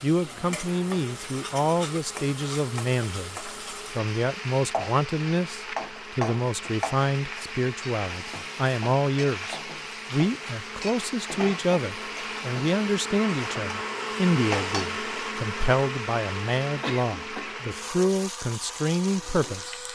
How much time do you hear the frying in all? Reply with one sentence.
You can hear the frying for 20 seconds altogether.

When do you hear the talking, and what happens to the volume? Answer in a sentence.
The talking can be heard from 0.0 to 19.8 s, at a steady volume.